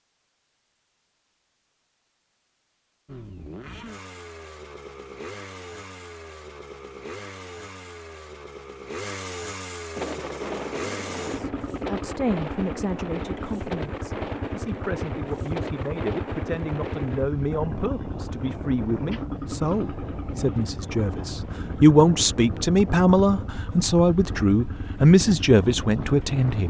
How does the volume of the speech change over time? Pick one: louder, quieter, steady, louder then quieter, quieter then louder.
louder.